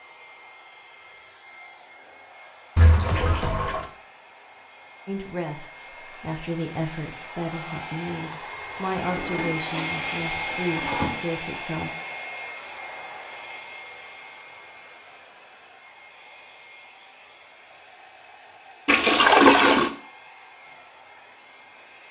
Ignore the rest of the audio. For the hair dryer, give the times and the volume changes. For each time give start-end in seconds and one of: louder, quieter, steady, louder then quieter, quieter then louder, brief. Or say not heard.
0.0-22.0 louder then quieter.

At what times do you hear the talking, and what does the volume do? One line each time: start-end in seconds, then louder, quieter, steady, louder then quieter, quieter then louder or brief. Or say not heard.
5.0-11.9 steady.